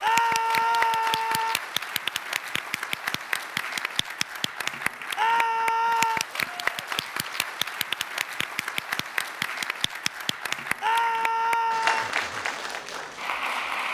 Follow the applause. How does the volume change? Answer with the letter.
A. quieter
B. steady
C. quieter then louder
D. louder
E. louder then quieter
B.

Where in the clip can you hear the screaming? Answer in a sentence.
You can hear the screaming from 0.0 to 1.6 s, from 5.2 to 6.2 s and from 10.8 to 12.1 s.